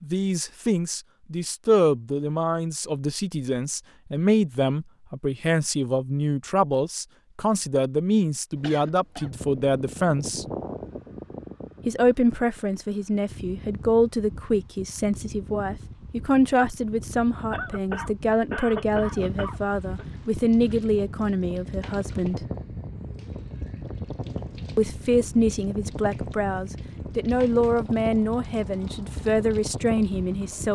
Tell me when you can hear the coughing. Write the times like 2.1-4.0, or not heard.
8.6-9.3, 17.5-20.1.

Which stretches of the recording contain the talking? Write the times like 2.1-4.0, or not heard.
0.0-10.4, 11.8-22.4, 24.8-30.7.